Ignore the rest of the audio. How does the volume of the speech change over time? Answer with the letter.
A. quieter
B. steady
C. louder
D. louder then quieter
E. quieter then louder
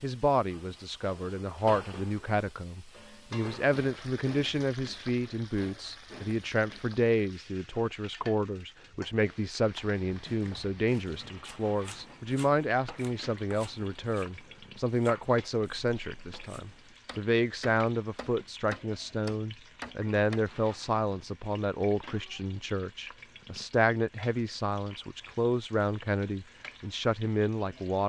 B.